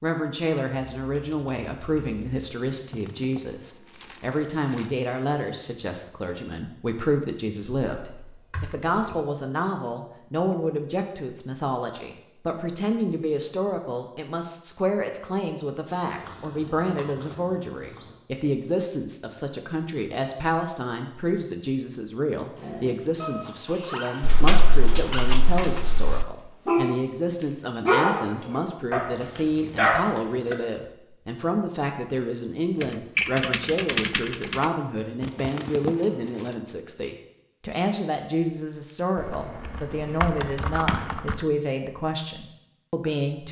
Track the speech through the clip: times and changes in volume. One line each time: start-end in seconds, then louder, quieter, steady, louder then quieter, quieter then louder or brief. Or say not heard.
0.0-43.4 steady.